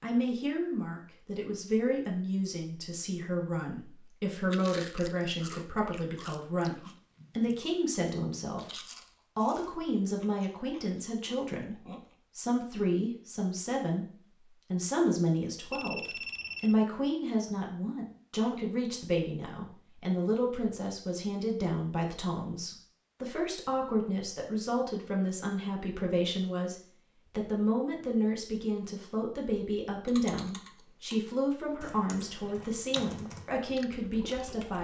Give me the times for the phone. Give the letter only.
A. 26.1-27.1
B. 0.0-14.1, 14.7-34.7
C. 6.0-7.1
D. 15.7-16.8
D.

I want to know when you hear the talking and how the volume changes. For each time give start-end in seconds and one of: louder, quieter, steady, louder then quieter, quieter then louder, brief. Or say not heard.
0.0-14.1 steady
14.7-34.7 steady.